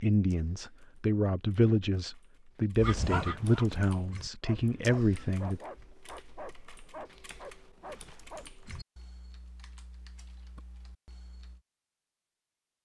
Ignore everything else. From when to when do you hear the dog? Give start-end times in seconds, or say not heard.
2.8-8.4.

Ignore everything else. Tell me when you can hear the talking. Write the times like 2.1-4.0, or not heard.
0.0-5.6.